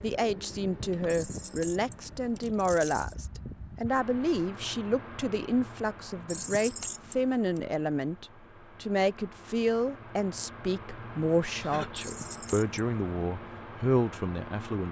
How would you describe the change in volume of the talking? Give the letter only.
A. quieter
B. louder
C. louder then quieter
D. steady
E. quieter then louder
D.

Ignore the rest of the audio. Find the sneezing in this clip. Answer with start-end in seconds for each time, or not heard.
11.5-12.1.